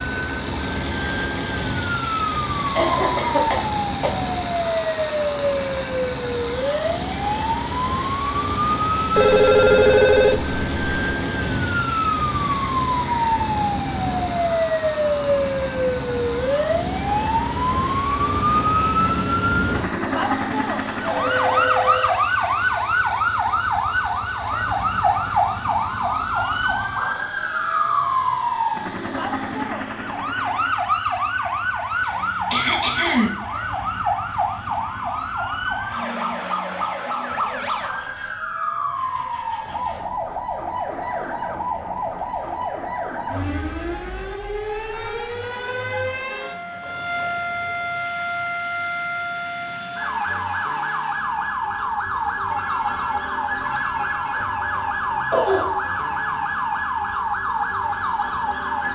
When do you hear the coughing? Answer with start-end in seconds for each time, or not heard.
2.5-4.3, 32.0-33.4, 55.3-55.8.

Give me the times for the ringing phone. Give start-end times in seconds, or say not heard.
9.2-11.0, 21.0-22.2, 52.5-54.5.